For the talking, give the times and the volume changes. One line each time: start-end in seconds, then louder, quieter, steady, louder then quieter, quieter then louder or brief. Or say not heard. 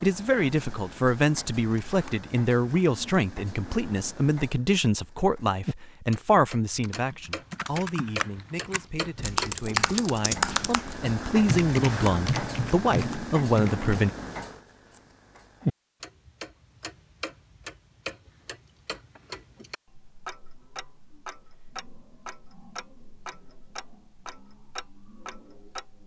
0.0-14.1 quieter then louder.